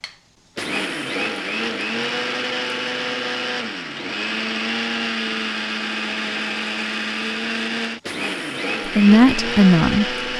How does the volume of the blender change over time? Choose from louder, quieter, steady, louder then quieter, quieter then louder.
steady.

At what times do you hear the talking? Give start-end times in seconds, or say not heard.
8.8-10.2.